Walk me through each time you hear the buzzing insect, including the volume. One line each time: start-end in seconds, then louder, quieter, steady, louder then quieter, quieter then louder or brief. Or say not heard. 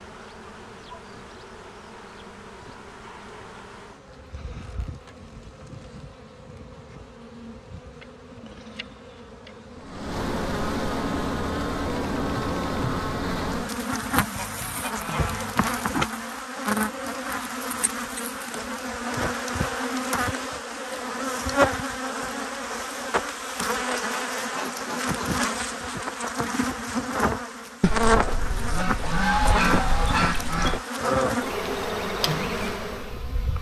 0.0-33.5 louder.